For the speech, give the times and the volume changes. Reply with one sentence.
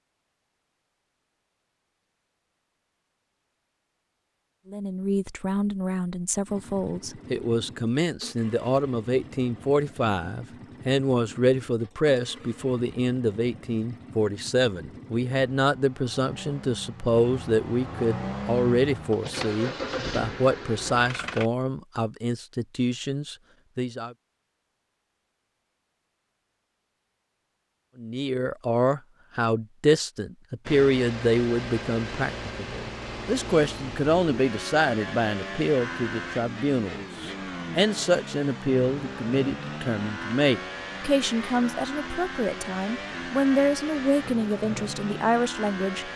The speech can be heard from 4.7 to 24.1 s, at a steady volume; and from 27.9 to 46.1 s, at a steady volume.